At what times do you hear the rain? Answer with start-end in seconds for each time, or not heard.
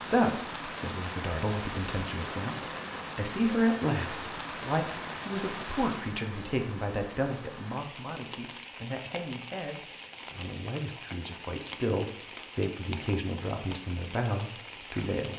0.0-15.3.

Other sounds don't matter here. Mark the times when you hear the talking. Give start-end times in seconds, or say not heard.
0.0-15.3.